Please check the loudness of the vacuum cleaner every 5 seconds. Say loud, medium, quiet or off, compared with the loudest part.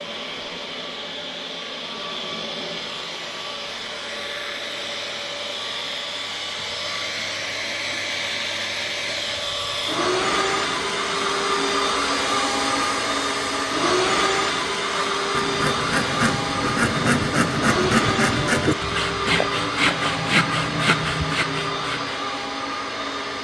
medium, medium, loud, loud, medium.